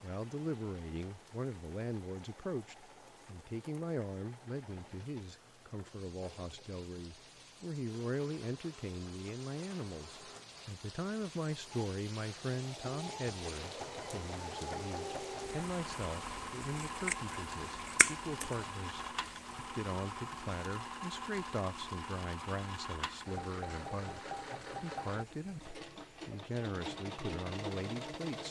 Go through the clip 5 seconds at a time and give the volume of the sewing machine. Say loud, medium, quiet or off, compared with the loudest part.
quiet, quiet, loud, loud, loud, loud.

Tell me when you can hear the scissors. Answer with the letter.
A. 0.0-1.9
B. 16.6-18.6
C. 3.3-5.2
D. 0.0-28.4
B.